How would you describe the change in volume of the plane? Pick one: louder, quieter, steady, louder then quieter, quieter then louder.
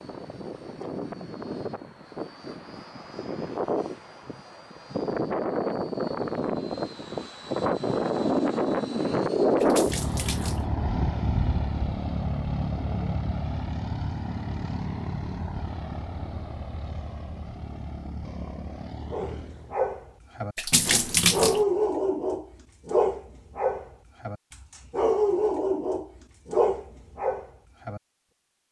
louder then quieter.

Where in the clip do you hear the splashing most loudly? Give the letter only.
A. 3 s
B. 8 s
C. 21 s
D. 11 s
C.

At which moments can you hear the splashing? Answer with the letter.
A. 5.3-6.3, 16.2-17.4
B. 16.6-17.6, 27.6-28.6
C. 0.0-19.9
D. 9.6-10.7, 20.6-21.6
D.